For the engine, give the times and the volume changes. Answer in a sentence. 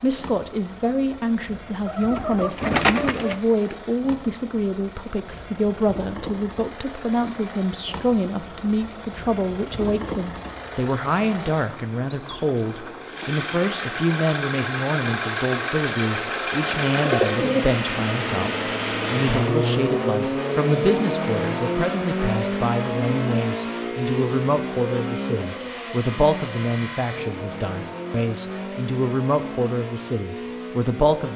You can hear the engine from 0.0 to 31.3 s, getting louder then quieter.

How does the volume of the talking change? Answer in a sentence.
The volume of the talking stays about the same.